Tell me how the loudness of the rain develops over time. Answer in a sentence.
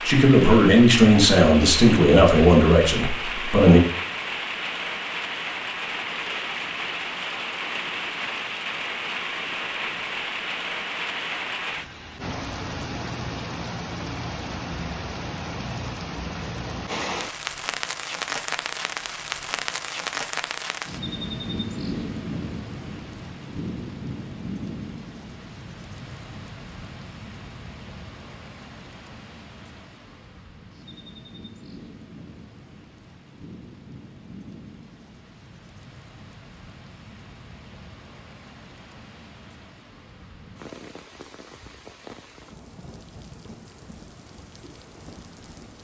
The volume of the rain goes down.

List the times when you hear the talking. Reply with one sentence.
You can hear the talking from 0.1 to 3.8 s.